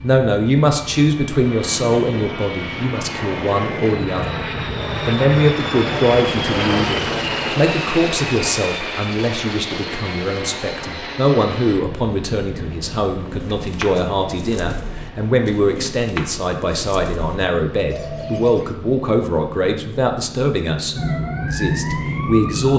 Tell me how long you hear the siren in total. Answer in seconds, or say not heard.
2 s.